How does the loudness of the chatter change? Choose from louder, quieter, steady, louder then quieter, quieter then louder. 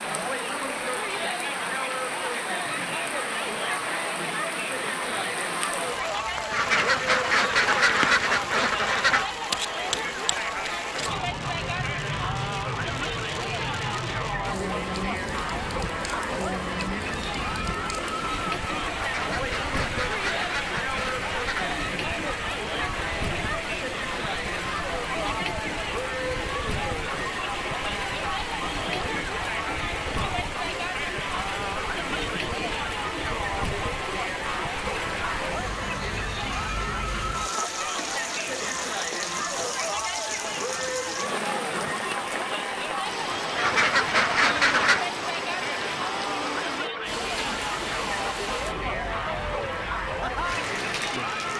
steady.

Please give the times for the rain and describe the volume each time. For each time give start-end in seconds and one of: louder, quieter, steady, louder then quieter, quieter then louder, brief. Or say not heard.
0.0-51.5 steady.